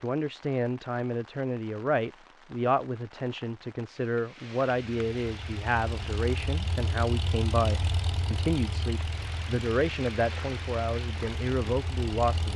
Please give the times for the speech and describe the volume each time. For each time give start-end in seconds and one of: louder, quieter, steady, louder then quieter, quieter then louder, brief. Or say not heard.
0.0-12.5 steady.